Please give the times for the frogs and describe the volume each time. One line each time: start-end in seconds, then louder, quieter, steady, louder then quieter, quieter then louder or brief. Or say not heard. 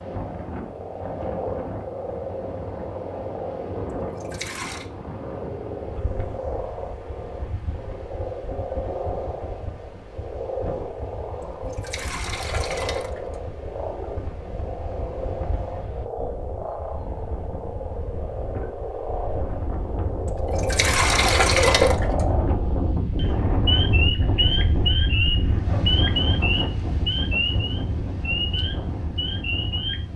0.0-30.1 louder.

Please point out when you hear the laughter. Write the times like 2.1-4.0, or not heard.
not heard.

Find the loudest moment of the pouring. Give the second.
22 s.